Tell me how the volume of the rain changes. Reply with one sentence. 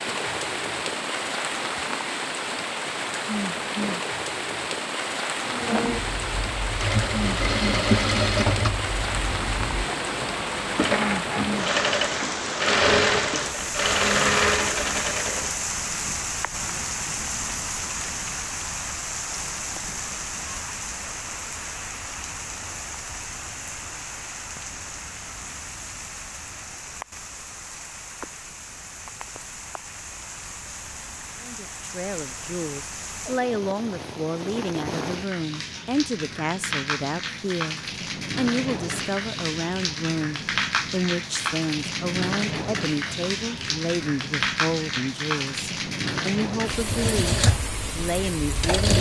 The loudness of the rain goes down, then up.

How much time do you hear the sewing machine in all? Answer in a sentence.
You can hear the sewing machine for 12 seconds altogether.